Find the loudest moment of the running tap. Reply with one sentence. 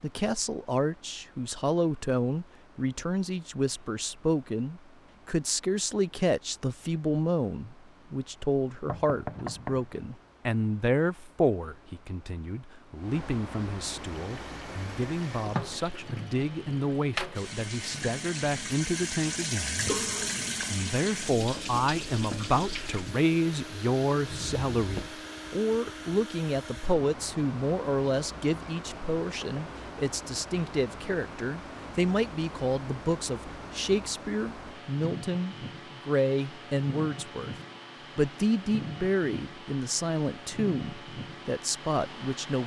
The volume of the running tap peaks at 20 seconds.